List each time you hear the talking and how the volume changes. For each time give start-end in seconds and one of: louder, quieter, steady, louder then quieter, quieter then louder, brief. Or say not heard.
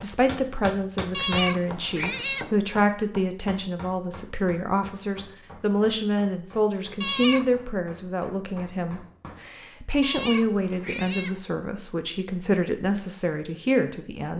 0.0-14.3 steady.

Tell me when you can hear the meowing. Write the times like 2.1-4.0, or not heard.
1.1-2.5, 7.0-7.5, 10.0-11.4.